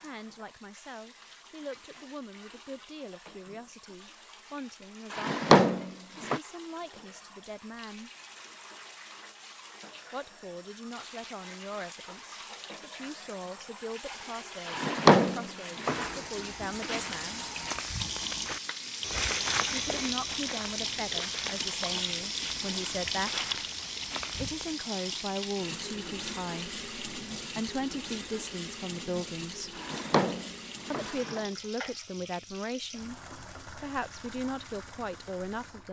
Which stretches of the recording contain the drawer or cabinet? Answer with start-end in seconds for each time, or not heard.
5.1-6.4, 14.7-16.2, 29.8-31.4.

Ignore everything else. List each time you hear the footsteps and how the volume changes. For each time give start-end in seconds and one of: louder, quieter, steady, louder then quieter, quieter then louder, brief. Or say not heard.
16.1-24.8 louder then quieter.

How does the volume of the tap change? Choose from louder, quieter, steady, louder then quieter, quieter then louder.
louder then quieter.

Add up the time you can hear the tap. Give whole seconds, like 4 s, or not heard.
36 s.